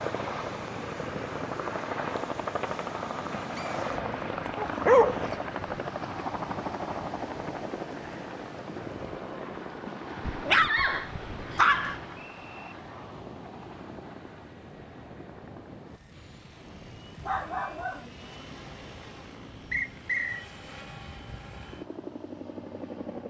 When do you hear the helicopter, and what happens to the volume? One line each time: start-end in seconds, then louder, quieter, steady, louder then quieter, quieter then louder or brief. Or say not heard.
0.0-23.2 quieter then louder.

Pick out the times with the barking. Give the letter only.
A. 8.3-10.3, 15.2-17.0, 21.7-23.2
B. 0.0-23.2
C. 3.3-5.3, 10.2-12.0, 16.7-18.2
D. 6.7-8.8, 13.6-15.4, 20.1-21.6
C.